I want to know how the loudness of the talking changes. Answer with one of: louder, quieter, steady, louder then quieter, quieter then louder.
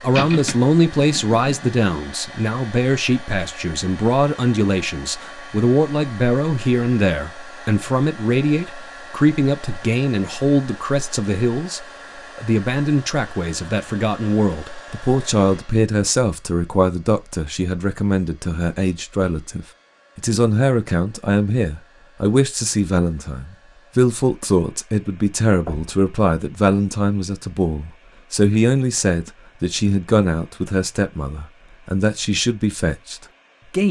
steady.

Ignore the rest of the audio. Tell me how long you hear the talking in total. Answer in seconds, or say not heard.
34 s.